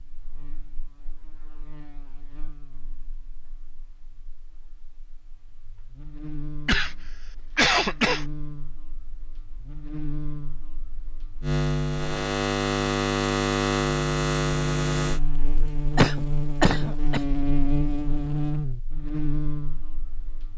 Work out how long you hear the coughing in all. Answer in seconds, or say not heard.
3 s.